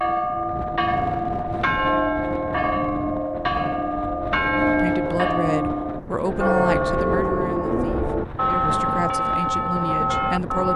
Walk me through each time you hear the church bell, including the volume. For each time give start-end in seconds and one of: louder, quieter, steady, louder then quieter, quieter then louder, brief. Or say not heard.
0.0-10.7 steady.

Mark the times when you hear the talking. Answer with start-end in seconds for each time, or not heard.
4.8-10.7.